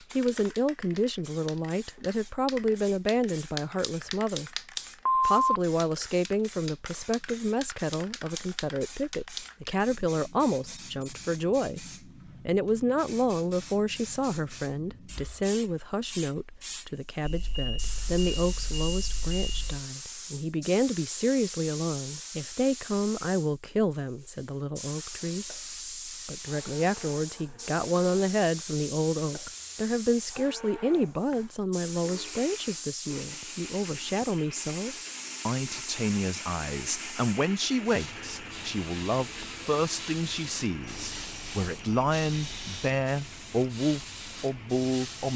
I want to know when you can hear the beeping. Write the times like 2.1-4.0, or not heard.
5.0-6.0, 17.2-19.9, 40.8-42.8.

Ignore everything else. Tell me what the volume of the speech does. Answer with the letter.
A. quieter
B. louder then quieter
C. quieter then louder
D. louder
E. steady
E.